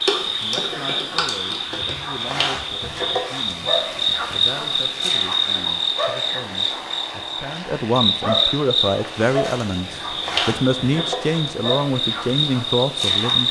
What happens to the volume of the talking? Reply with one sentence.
The loudness of the talking goes up.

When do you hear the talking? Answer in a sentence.
You can hear the talking from 0.4 to 13.4 s.